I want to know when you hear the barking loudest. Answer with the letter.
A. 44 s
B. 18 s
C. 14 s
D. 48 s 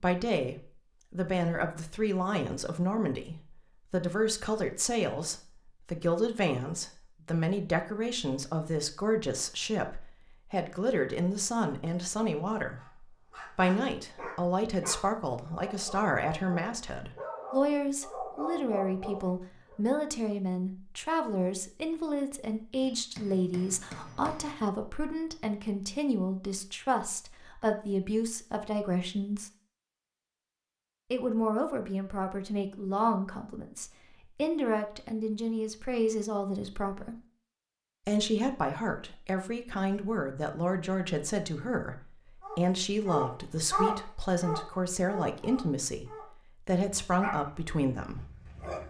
A.